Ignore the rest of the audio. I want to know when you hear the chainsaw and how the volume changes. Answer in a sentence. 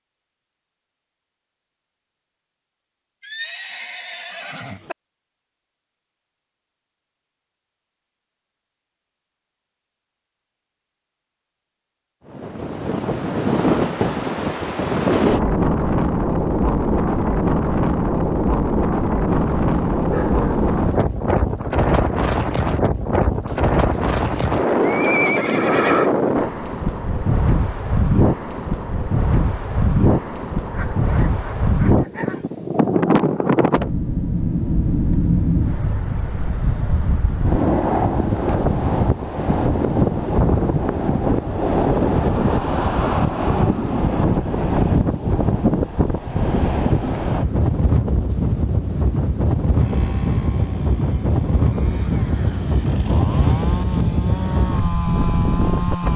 The chainsaw can be heard from 49.7 to 56.1 s, getting louder.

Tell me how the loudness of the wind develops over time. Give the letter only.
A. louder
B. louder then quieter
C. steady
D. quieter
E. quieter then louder
C.